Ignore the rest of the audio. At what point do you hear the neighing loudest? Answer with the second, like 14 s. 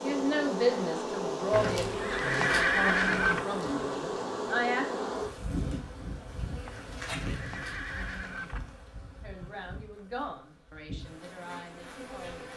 3 s.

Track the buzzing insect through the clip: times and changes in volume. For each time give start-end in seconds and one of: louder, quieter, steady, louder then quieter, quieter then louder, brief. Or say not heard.
0.0-12.5 quieter.